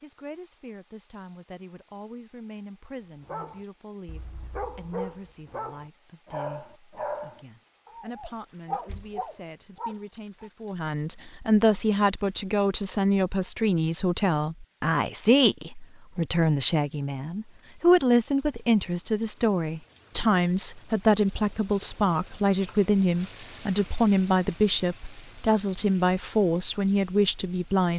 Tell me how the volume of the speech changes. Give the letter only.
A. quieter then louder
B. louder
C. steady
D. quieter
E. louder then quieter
B.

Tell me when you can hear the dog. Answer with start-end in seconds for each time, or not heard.
3.2-10.5.